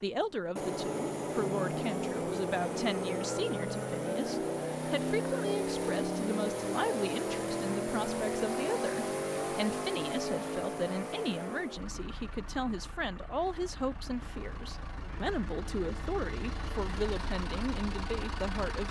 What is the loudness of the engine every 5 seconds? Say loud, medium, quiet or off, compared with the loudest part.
loud, loud, medium, medium.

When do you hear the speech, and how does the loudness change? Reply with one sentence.
The speech can be heard from 0.0 to 18.8 s, at a steady volume.